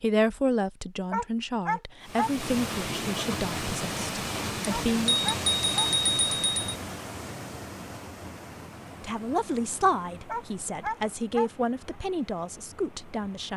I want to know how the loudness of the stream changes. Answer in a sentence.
The volume of the stream goes down.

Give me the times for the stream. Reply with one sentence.
You can hear the stream from 2.0 to 13.5 s.